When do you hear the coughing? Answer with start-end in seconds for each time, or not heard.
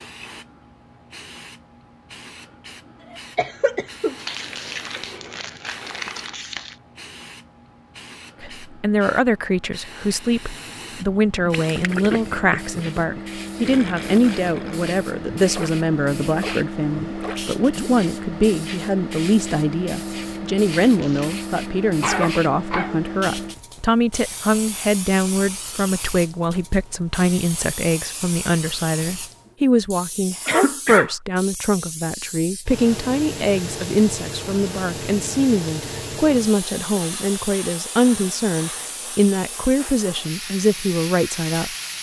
3.0-4.2, 22.0-22.9, 30.4-31.1.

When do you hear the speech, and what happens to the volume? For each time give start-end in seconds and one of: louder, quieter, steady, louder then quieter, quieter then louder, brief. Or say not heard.
8.4-41.7 steady.